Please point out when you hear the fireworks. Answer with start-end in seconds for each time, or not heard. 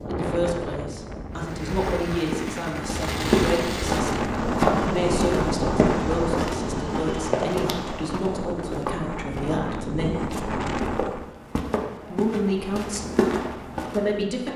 1.3-8.2.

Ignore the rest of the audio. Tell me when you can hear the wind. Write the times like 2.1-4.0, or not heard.
0.0-11.3.